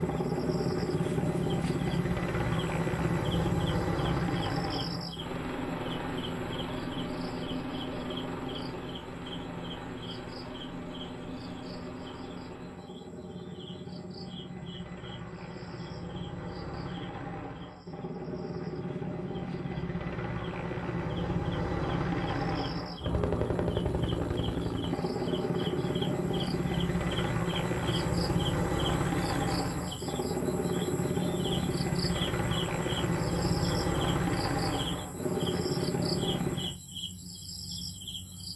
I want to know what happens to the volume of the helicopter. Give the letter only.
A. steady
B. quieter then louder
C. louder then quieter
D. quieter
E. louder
B.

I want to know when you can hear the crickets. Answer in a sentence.
The crickets can be heard from 0.0 to 38.5 s.